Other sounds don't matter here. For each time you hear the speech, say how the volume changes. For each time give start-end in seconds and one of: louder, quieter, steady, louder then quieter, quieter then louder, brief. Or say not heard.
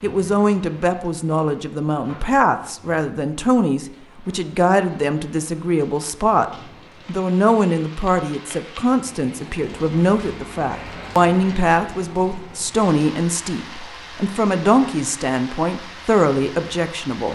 0.0-17.3 steady.